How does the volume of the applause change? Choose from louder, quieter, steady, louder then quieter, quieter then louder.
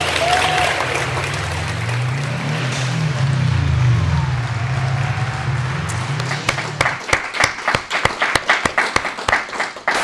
quieter then louder.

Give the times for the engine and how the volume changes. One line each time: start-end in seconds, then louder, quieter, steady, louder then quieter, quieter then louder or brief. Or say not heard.
0.0-7.0 louder then quieter.